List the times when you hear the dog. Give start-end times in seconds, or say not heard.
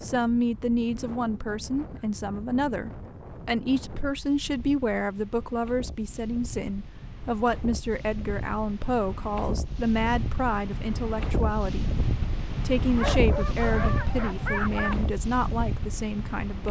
12.9-14.9.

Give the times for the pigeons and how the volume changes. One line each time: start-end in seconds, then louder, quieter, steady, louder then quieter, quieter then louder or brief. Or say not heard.
not heard.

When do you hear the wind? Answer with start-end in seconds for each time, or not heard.
0.0-16.6.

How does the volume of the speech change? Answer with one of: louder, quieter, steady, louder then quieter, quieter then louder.
steady.